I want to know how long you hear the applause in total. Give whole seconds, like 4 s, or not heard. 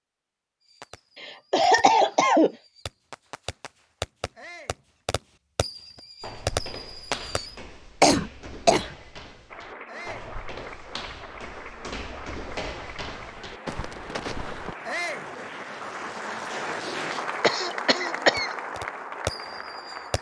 11 s.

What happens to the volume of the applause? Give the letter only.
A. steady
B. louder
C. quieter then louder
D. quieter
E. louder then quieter
B.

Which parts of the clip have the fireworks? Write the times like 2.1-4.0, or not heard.
0.6-7.5, 18.4-20.1.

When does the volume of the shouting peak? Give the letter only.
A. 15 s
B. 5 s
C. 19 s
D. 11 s
A.